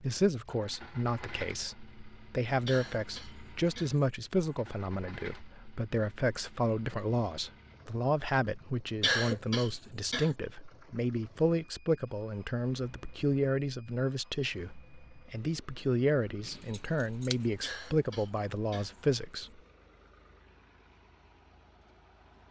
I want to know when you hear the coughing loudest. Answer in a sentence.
The volume of the coughing peaks at 9 seconds.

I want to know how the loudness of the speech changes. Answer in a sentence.
The loudness of the speech stays about the same.